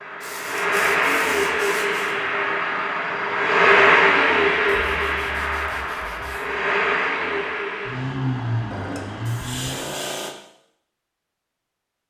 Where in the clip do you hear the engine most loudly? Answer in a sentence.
The loudest moment of the engine is at 4 seconds.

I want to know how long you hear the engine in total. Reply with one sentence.
You can hear the engine for 10 seconds altogether.